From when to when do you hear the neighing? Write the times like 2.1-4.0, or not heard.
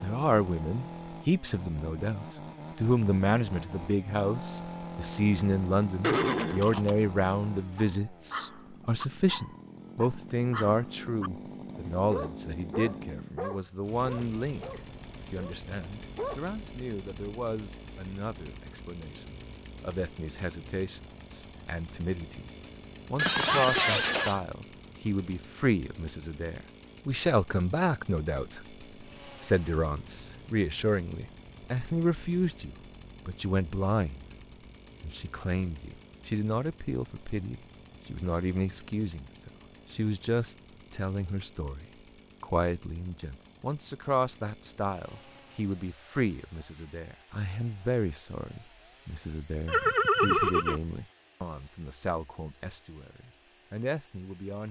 6.0-7.0, 23.1-24.4, 49.6-50.8.